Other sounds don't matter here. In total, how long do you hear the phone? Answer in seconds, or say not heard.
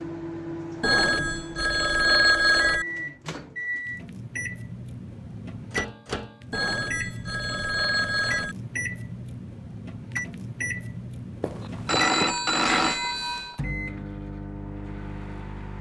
6 s.